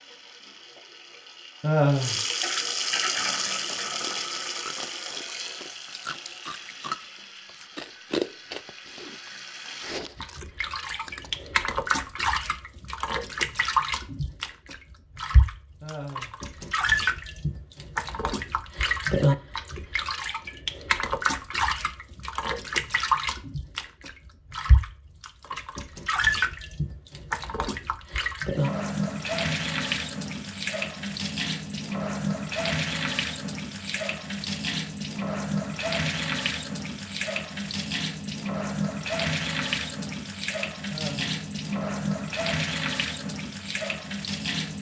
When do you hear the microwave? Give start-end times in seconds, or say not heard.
not heard.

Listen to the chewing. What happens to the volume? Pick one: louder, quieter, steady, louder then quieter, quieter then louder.
louder then quieter.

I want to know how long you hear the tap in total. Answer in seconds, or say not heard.
45 s.